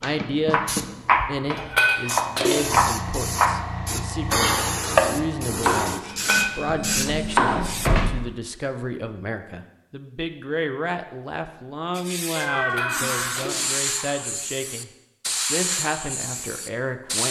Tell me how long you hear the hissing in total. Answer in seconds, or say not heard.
13 s.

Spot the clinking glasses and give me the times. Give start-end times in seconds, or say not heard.
1.5-2.9, 6.0-6.6, 12.6-13.9.